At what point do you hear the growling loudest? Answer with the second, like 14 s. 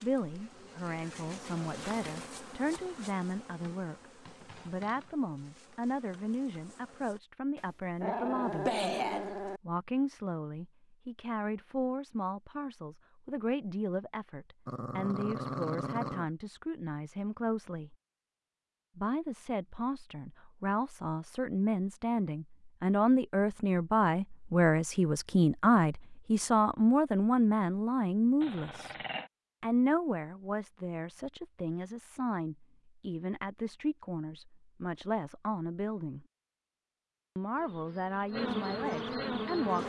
9 s.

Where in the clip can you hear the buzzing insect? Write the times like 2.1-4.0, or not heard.
0.0-7.2, 37.5-39.8.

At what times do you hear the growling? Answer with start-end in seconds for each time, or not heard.
7.5-9.6, 14.7-16.3, 28.4-29.3.